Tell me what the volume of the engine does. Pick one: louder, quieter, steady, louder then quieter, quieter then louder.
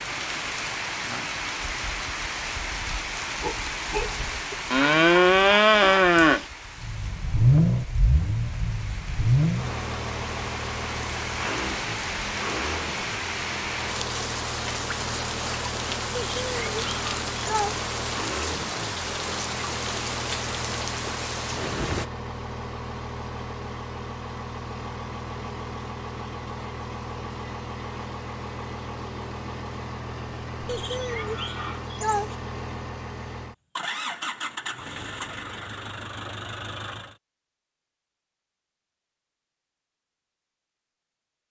quieter.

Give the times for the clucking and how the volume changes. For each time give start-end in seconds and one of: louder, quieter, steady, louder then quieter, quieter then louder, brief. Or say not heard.
not heard.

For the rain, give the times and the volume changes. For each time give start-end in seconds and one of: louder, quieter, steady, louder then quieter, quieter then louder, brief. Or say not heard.
0.0-22.1 quieter then louder.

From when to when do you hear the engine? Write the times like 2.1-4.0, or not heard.
6.8-37.1.